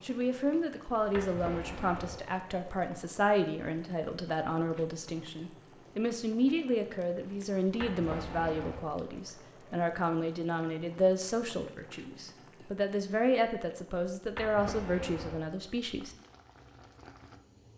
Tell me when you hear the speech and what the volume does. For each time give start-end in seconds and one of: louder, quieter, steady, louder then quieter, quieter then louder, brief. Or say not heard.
0.0-16.1 steady.